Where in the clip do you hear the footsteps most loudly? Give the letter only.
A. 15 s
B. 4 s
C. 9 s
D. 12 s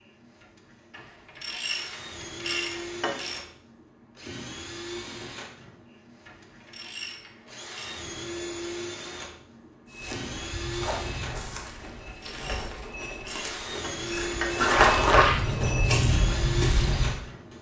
A.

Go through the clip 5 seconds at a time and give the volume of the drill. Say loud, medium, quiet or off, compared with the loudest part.
medium, medium, loud, loud.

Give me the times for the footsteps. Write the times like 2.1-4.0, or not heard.
9.8-17.2.